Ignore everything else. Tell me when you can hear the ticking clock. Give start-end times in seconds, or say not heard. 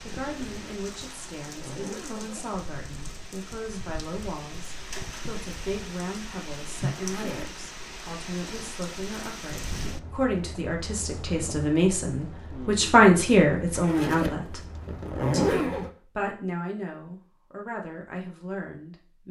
not heard.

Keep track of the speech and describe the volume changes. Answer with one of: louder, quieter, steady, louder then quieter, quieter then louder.
louder then quieter.